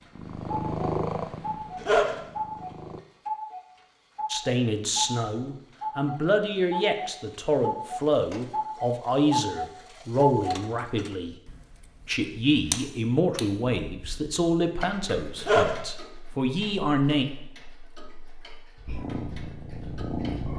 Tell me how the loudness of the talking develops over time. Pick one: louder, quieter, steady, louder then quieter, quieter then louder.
steady.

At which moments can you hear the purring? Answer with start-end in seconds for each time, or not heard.
0.1-3.0, 18.9-20.5.